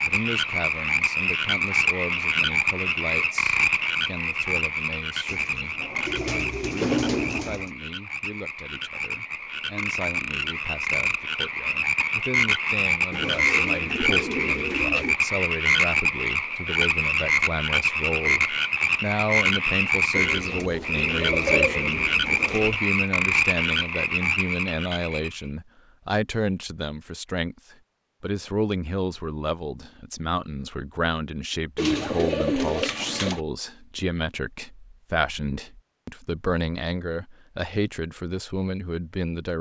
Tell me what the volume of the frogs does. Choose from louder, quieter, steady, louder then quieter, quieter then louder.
quieter then louder.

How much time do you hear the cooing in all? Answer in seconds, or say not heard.
9 s.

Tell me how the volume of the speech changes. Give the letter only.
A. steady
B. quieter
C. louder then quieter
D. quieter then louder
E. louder
E.